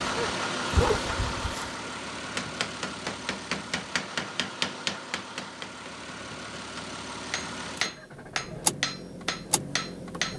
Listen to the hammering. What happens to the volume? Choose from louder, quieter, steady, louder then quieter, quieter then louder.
quieter then louder.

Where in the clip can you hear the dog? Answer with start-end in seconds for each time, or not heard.
0.0-1.9.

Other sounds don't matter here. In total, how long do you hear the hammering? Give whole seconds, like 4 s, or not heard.
8 s.